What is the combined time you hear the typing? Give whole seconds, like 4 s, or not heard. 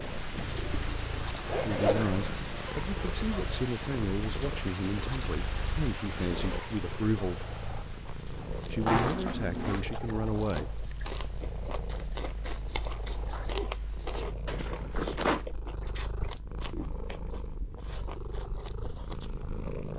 not heard.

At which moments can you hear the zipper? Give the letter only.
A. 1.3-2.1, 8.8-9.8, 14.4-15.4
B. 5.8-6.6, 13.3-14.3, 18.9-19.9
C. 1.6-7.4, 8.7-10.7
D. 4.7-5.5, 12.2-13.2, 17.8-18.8
A.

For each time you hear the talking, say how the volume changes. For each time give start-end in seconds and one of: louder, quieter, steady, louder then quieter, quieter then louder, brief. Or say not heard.
1.6-7.4 steady
8.7-10.7 brief.